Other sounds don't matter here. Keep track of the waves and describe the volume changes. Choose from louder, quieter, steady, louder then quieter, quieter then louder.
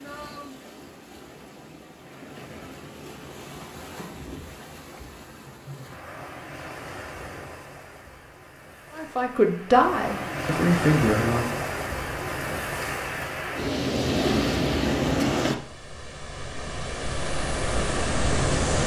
louder.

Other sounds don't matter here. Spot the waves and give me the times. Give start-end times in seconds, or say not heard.
0.0-18.8.